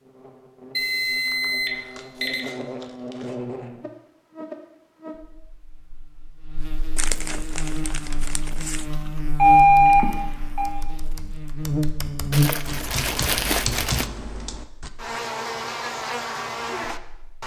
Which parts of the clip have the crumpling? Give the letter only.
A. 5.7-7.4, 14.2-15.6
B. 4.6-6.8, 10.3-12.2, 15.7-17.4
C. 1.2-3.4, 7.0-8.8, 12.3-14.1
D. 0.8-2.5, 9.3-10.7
C.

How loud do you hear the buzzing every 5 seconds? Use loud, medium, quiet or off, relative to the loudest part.
medium, medium, loud, loud.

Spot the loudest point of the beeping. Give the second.
10 s.